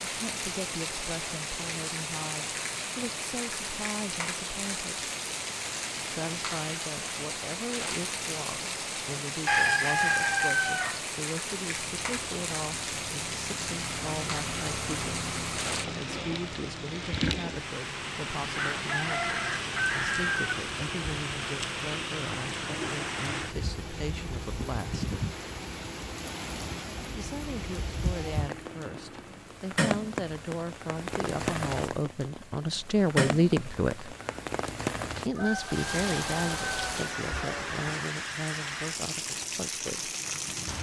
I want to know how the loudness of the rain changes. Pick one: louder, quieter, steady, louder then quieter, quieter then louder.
steady.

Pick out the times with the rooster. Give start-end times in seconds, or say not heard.
9.4-11.0, 18.6-20.6, 35.4-37.8.